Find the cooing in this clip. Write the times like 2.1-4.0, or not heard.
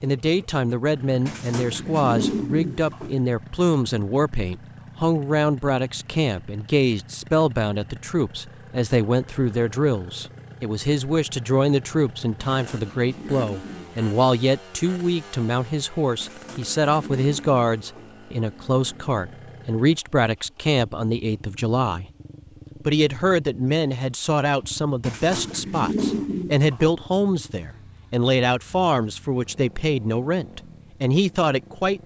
1.2-3.1, 12.4-14.1, 16.2-18.1, 25.0-26.9.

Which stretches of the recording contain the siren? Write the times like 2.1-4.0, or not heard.
not heard.